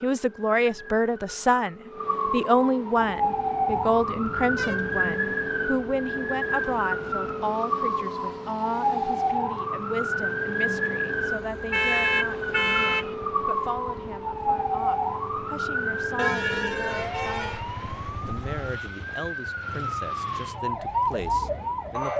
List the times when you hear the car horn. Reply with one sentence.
The car horn can be heard from 3.6 to 5.0 s, from 11.7 to 13.2 s and from 16.1 to 17.6 s.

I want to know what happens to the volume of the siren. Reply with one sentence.
The volume of the siren stays about the same.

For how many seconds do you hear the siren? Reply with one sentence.
The siren can be heard for 22 seconds in total.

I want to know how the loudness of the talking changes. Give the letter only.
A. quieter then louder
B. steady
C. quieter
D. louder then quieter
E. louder
C.